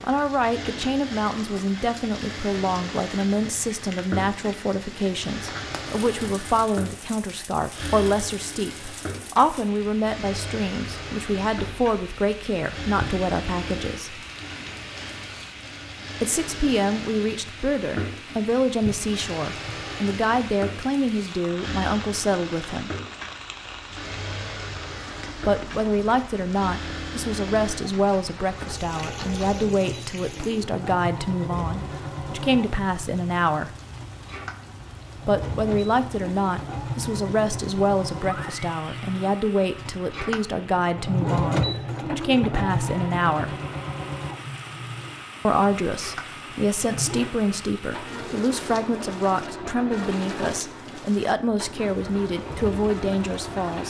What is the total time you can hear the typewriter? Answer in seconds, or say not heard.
not heard.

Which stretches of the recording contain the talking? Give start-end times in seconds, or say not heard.
0.0-14.2, 16.2-22.9, 25.4-33.8, 35.2-43.5, 45.5-53.8.